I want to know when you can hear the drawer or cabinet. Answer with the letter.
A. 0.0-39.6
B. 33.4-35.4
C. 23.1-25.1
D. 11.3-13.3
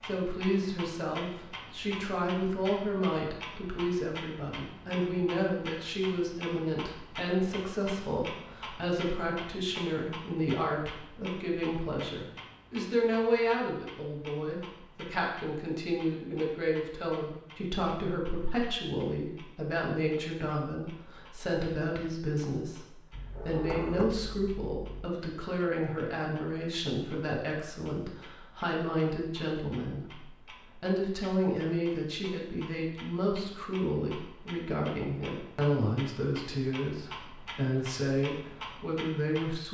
C.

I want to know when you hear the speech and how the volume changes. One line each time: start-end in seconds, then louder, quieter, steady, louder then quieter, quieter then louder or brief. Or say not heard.
0.0-39.6 steady.